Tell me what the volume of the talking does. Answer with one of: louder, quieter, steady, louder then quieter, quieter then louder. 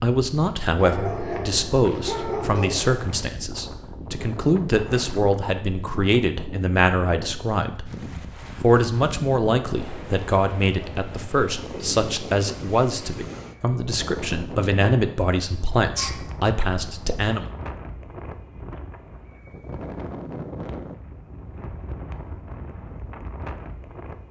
steady.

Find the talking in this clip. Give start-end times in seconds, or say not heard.
0.0-7.9, 8.6-17.5.